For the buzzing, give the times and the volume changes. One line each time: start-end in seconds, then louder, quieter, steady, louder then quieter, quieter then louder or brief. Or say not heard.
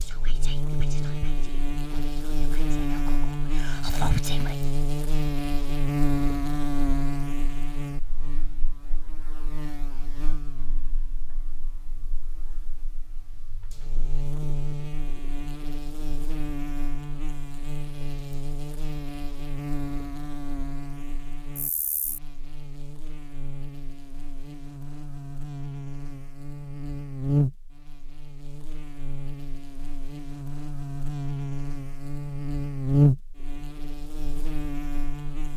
0.0-35.5 quieter then louder.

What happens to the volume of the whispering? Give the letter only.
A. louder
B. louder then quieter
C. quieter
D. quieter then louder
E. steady
D.